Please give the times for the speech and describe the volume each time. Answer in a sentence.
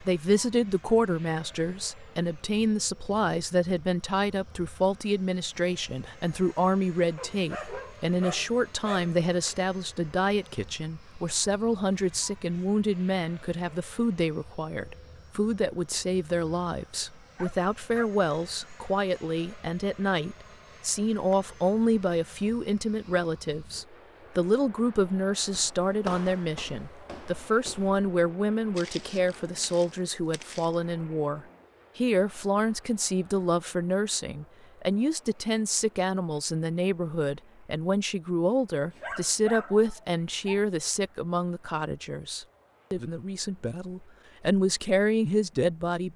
The speech can be heard from 0.0 to 46.1 s, at a steady volume.